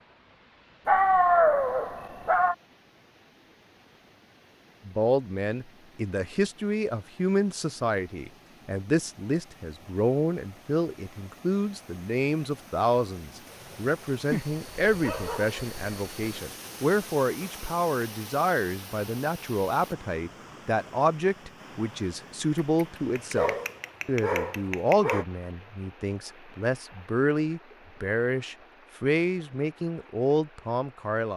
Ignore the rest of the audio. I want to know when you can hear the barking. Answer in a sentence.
The barking can be heard from 0.8 to 2.5 s, from 14.2 to 16.1 s and from 22.8 to 25.2 s.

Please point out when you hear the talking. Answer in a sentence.
You can hear the talking from 4.8 to 31.3 s.